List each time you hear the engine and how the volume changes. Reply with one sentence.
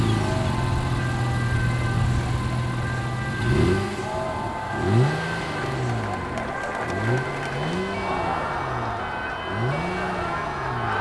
You can hear the engine from 0.0 to 10.9 s, getting quieter.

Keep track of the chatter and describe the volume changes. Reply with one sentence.
The loudness of the chatter goes up.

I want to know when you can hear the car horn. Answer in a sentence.
You can't hear the car horn here.